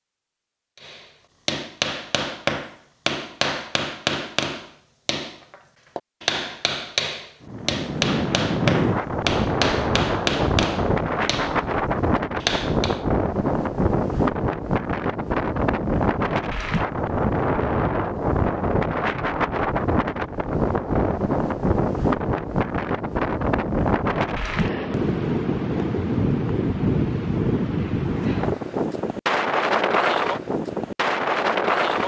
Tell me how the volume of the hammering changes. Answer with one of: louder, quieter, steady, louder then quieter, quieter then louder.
steady.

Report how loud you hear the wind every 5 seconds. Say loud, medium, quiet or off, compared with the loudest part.
off, loud, loud, loud, loud, loud, loud.